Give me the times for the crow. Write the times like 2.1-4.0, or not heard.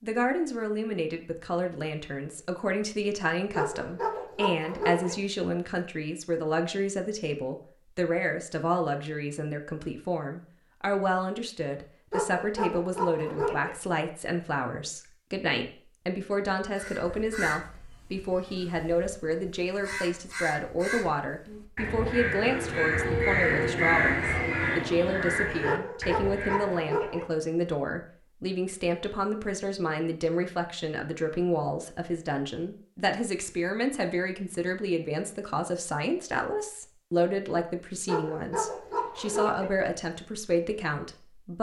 16.8-27.0.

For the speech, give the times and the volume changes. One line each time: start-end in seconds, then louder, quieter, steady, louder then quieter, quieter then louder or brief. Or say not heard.
0.0-41.5 steady.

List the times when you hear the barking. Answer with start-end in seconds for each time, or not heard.
3.5-5.2, 12.1-13.8, 25.6-27.3, 38.0-39.7.